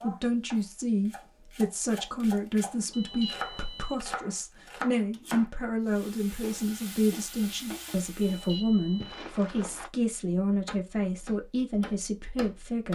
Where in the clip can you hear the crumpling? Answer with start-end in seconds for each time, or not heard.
9.0-9.9.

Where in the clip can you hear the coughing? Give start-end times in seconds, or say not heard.
not heard.